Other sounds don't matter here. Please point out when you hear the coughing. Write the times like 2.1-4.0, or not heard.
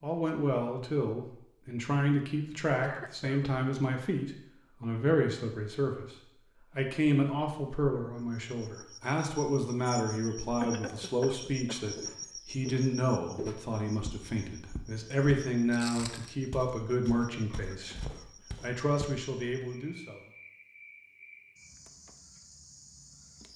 2.8-3.5, 10.6-12.2, 17.5-18.4.